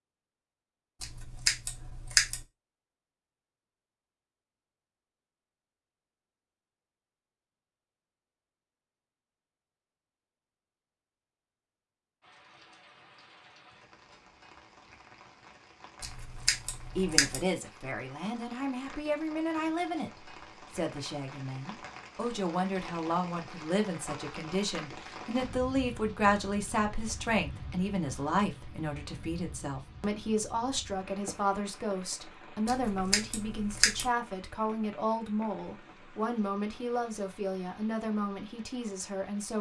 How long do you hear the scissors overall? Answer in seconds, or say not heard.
4 s.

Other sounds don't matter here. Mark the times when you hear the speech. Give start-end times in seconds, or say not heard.
16.9-39.5.